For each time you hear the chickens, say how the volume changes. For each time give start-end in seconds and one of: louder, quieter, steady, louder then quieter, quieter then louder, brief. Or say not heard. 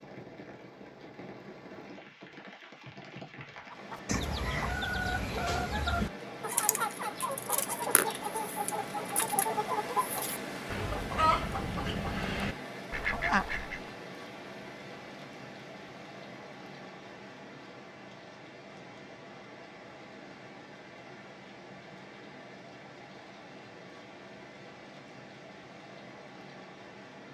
3.7-13.9 steady.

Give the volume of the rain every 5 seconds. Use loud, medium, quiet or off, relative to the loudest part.
medium, loud, loud, medium, medium, medium.